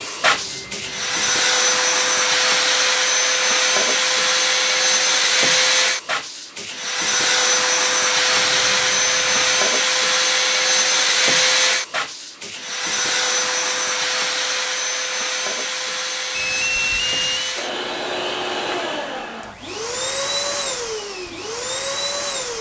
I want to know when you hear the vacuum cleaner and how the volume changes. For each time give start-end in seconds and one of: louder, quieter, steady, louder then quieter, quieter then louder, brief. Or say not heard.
0.0-22.5 quieter.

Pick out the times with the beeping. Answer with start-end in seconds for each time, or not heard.
0.3-1.4, 8.2-9.7, 16.4-17.6.